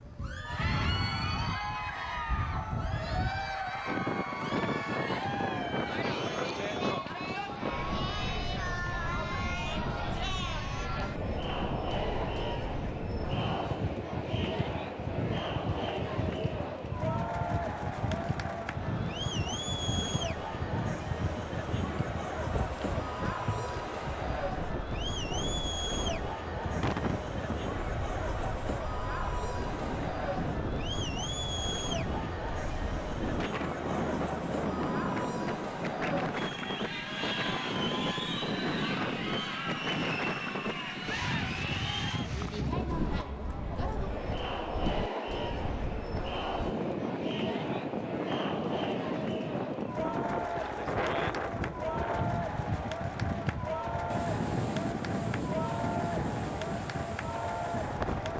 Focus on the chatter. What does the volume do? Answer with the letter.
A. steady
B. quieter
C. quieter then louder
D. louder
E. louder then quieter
A.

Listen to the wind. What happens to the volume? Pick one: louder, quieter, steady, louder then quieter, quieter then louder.
steady.